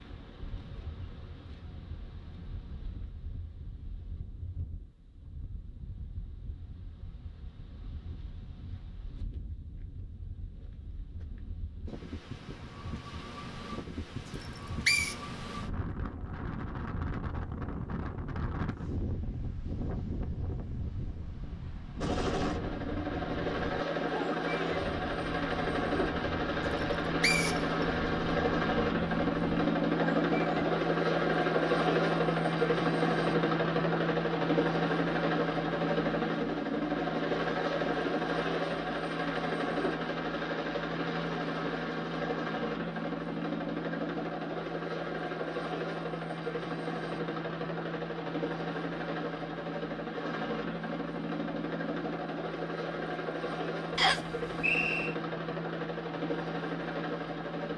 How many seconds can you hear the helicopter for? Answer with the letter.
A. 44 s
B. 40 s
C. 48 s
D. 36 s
D.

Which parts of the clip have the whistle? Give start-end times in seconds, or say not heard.
14.3-15.2, 26.7-27.9, 54.0-55.1.